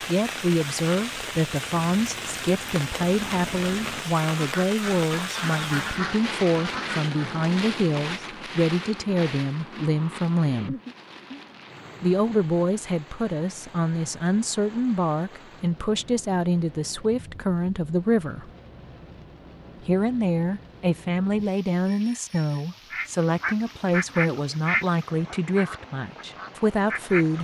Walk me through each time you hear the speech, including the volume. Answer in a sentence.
You can hear the speech from 0.1 to 10.8 s, at a steady volume; from 12.0 to 18.5 s, at a steady volume; and from 19.9 to 27.3 s, at a steady volume.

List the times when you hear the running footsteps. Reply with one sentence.
The running footsteps can't be heard in this clip.